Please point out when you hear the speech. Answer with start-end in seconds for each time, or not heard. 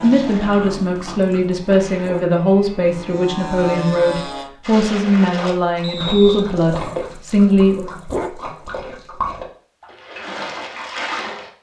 0.0-7.9.